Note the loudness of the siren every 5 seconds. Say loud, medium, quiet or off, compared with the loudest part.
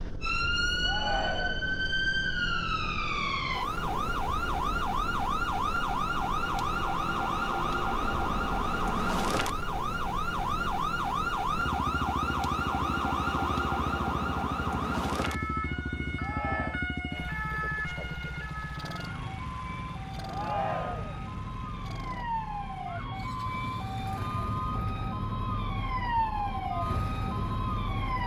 loud, loud, loud, medium, medium, loud.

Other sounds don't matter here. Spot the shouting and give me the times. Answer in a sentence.
The shouting can be heard from 0.8 to 1.8 s, from 16.1 to 16.9 s and from 20.3 to 21.2 s.